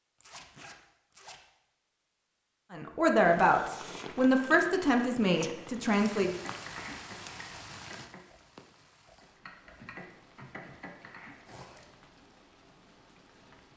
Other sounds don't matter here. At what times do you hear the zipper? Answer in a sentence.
You can hear the zipper from 0.2 to 1.4 s and from 11.4 to 12.1 s.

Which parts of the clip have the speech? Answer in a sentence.
You can hear the speech from 2.7 to 6.3 s.